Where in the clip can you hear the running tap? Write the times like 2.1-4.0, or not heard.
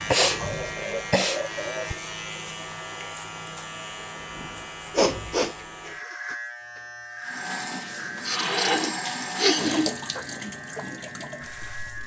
7.2-12.0.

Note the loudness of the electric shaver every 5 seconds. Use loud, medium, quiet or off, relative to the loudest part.
loud, loud, medium.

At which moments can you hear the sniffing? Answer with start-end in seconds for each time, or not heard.
0.1-1.9, 5.0-5.9, 8.2-9.9.